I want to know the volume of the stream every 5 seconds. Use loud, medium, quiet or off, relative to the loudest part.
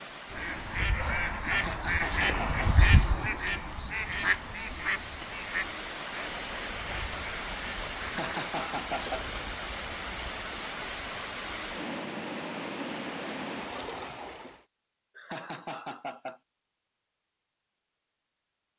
medium, loud, loud, off.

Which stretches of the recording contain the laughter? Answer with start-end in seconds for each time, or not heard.
1.5-2.6, 8.0-9.2, 15.2-16.4.